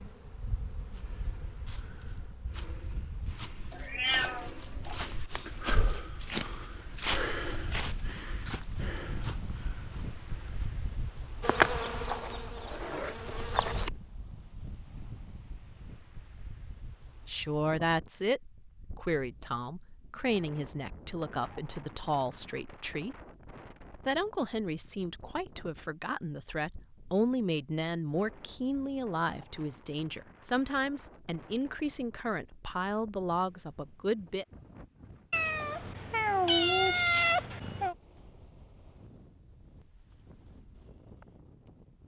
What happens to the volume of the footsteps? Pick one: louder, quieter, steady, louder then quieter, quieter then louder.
louder then quieter.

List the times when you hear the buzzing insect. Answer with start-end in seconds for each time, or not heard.
0.0-3.4, 11.4-13.9.